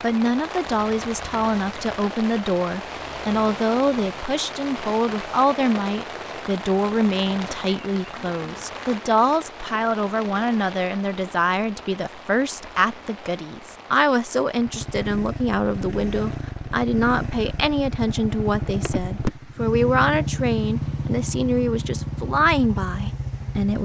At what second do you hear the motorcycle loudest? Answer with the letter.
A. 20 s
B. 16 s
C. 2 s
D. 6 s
A.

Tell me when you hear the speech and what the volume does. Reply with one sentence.
You can hear the speech from 0.0 to 23.7 s, at a steady volume.